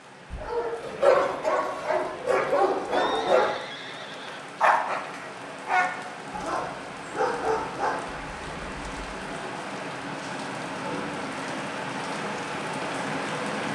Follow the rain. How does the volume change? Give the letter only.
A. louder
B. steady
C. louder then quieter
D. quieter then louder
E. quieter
A.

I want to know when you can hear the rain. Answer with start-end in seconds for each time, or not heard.
0.0-13.7.